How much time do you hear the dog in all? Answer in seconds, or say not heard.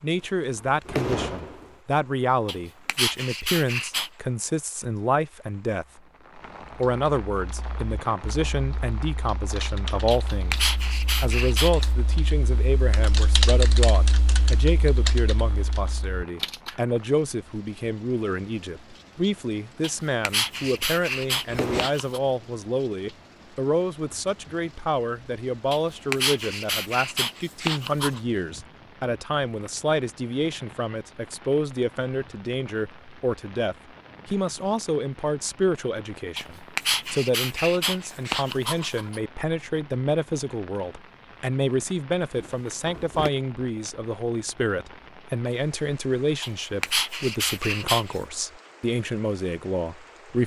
13 s.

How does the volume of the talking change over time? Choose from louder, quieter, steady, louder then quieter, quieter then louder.
steady.